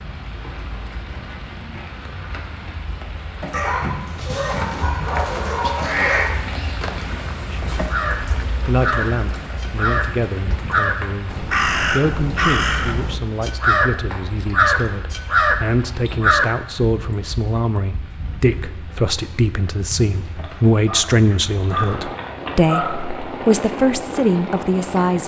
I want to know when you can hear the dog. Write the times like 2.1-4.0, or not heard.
3.5-6.3, 20.4-22.9.